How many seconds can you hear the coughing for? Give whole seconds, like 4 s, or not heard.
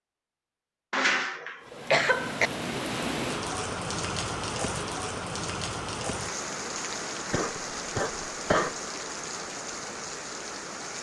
3 s.